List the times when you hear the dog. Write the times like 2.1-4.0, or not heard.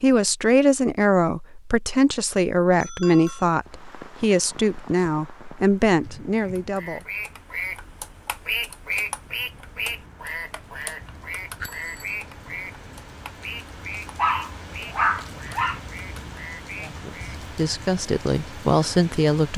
14.2-15.8.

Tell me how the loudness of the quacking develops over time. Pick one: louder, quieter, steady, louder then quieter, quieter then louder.
quieter.